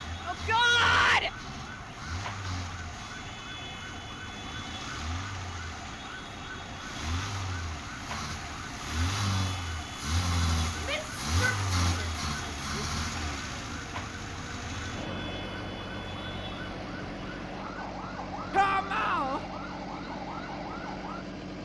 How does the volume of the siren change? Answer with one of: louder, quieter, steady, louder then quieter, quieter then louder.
steady.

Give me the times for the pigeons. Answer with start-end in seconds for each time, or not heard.
not heard.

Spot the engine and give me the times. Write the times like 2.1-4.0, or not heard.
0.0-21.5.